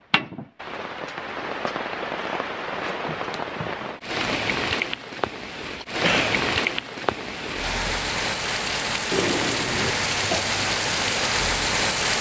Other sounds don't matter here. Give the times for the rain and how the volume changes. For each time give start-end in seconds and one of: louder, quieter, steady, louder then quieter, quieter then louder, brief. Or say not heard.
0.1-12.1 louder.